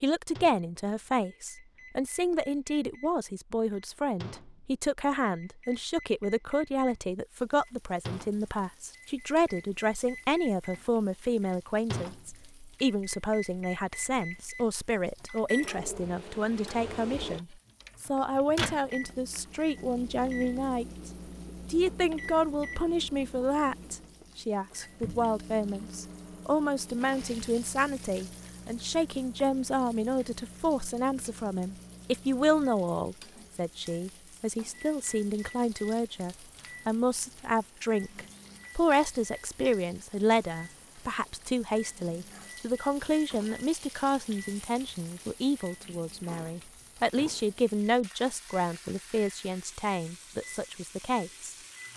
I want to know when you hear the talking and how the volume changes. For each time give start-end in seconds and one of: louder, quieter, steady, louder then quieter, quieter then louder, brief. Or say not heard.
0.0-51.5 steady.